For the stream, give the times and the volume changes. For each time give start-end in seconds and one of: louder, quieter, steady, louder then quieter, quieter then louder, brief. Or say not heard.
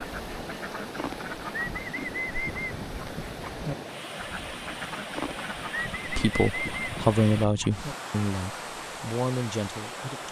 0.0-10.2 steady.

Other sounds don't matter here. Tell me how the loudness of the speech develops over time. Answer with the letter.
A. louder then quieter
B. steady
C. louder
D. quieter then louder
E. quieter
D.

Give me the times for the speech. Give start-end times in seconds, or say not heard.
6.0-10.2.